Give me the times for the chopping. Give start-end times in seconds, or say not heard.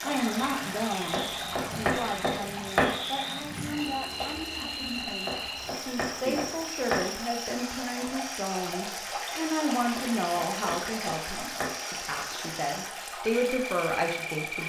1.1-3.0, 5.2-7.1, 9.9-11.8.